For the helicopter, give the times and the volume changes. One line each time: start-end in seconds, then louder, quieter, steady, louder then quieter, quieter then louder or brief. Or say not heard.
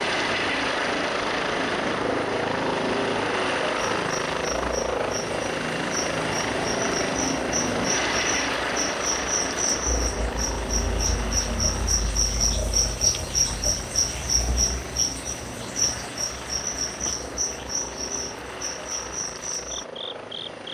0.0-20.6 quieter.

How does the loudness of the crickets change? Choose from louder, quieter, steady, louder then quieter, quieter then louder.
louder then quieter.